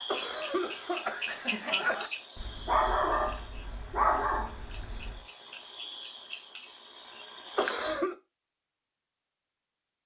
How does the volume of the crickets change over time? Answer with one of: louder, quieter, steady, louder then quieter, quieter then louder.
quieter then louder.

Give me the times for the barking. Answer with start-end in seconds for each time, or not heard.
2.4-5.2.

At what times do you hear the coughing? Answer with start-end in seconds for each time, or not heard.
0.1-2.1, 7.5-8.2.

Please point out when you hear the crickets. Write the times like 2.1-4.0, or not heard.
0.0-8.0.